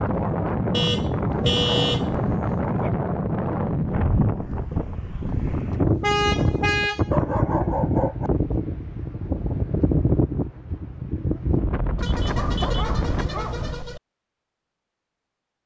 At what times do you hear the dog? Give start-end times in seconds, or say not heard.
1.3-3.0, 7.1-8.3, 12.3-13.8.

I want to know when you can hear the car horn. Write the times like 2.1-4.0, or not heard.
0.7-2.5, 5.3-7.1, 11.9-14.0.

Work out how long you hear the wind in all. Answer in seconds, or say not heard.
13 s.